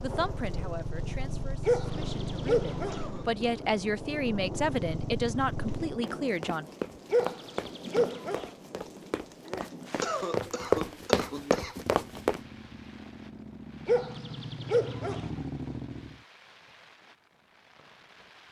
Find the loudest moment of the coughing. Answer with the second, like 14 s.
10 s.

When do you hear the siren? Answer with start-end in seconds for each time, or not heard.
not heard.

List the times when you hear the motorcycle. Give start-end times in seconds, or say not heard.
0.0-6.0, 11.8-16.2.